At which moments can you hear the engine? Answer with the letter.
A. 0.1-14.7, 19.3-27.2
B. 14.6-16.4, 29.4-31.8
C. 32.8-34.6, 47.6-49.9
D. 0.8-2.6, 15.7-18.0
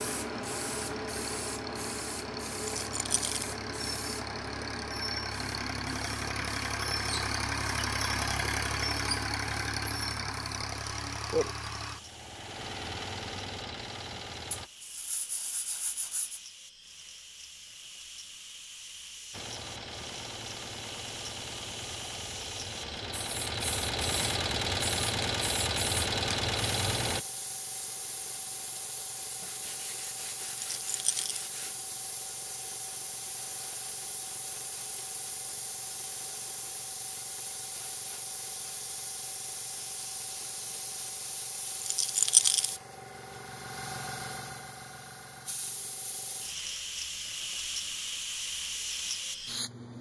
A.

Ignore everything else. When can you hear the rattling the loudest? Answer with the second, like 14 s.
42 s.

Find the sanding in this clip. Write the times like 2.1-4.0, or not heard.
14.6-16.4, 29.4-31.8.